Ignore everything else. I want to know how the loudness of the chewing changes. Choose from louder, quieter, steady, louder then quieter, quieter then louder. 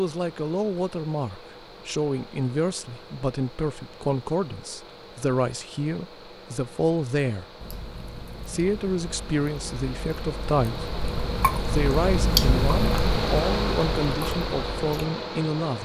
louder then quieter.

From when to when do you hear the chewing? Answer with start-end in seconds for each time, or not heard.
7.6-15.1.